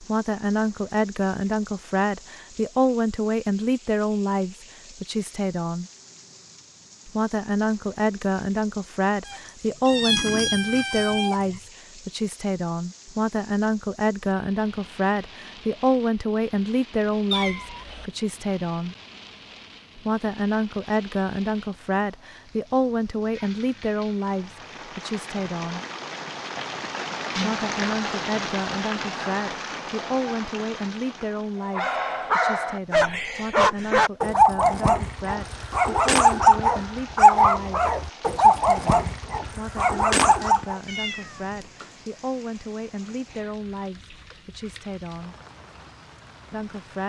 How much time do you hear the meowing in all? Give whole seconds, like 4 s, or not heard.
4 s.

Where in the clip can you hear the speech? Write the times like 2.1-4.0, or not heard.
0.0-5.9, 7.0-18.9, 19.9-25.9, 27.4-45.4, 46.5-47.0.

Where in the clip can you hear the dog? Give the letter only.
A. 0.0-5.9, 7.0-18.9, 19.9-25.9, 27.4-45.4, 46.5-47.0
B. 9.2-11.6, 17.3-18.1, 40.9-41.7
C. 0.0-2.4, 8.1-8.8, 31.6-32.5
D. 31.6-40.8
D.